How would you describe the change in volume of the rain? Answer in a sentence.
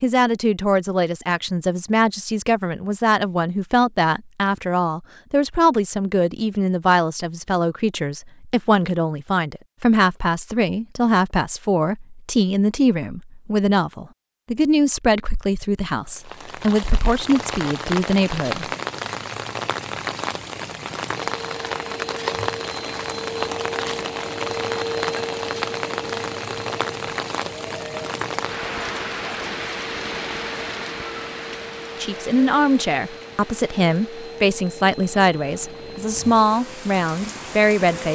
The volume of the rain goes down.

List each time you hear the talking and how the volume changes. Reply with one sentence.
The talking can be heard from 0.0 to 18.6 s, at a steady volume; and from 32.0 to 38.0 s, at a steady volume.